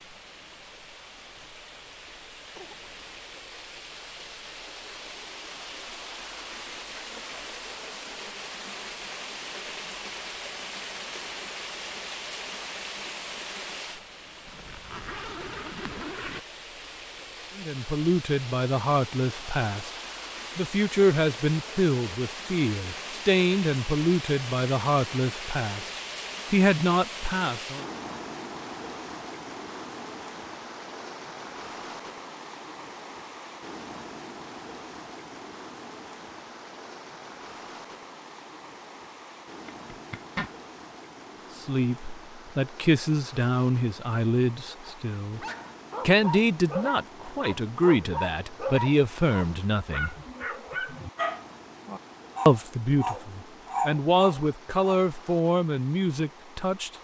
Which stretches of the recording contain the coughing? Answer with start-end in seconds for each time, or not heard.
2.5-3.2.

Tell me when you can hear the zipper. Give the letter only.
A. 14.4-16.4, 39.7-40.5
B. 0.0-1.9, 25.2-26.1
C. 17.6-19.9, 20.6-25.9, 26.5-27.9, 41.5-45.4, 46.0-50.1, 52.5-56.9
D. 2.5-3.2
A.